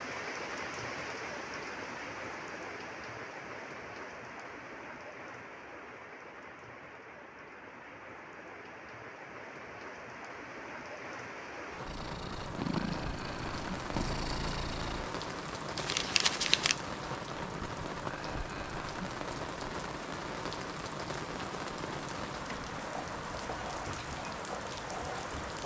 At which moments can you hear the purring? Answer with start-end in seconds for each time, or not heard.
11.8-15.1.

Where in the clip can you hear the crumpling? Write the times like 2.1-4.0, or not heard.
15.8-16.8.